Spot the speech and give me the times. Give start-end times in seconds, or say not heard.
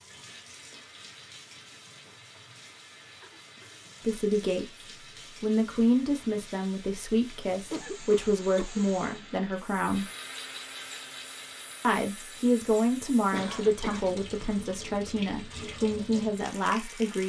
4.0-4.7, 5.4-10.1, 11.8-17.2.